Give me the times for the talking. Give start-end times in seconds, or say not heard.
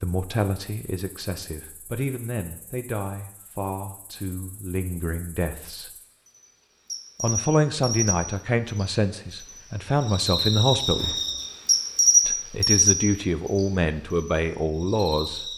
0.0-5.9, 7.2-11.2, 12.2-15.5.